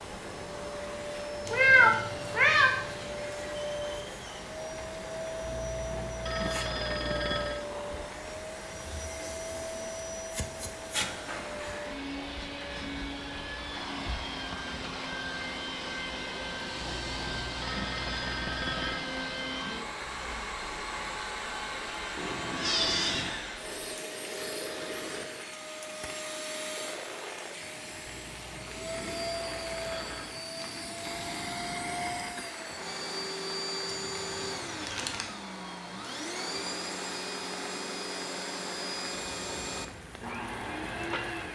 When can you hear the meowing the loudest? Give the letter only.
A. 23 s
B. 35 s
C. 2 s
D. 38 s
C.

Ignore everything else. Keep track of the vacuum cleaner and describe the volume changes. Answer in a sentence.
The loudness of the vacuum cleaner stays about the same.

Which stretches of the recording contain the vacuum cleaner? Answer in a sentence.
You can hear the vacuum cleaner from 0.0 to 41.4 s.